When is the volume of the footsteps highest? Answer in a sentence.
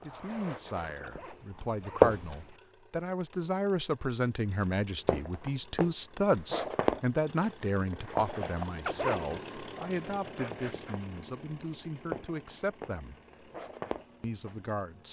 The volume of the footsteps peaks at 2 seconds.